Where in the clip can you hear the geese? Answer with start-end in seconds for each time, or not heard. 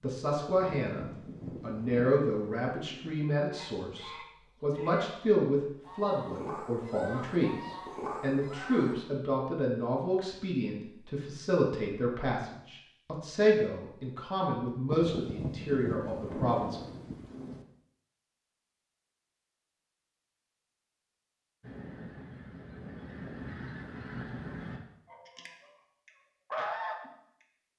3.5-8.9, 21.6-27.4.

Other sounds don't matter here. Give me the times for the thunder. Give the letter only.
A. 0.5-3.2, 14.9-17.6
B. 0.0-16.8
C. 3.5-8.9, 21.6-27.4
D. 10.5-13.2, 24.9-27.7
A.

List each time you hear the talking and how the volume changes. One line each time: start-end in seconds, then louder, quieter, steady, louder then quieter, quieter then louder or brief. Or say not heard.
0.0-16.8 steady.